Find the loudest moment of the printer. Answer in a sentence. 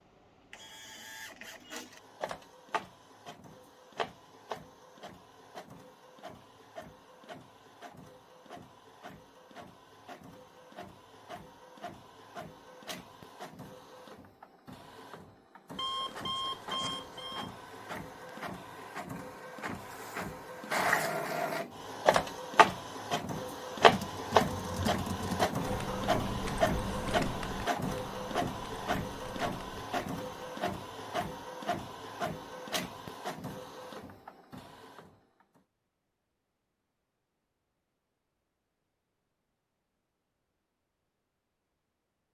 The loudest moment of the printer is at 24 seconds.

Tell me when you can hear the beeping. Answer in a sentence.
The beeping can be heard from 15.8 to 17.5 s.